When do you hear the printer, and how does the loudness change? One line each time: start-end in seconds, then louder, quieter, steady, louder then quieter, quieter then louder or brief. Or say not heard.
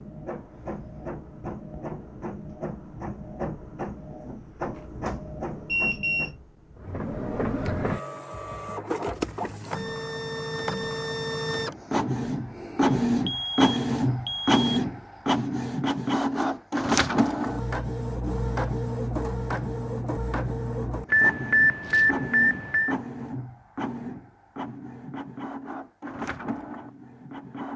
0.0-27.7 louder then quieter.